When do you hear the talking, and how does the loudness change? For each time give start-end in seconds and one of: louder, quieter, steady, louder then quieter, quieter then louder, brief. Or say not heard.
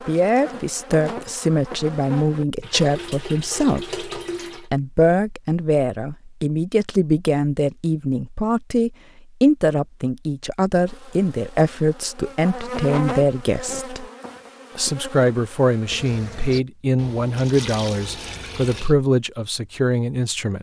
0.1-14.1 steady
14.8-20.5 steady.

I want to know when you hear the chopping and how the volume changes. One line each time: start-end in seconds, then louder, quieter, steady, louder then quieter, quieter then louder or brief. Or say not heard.
not heard.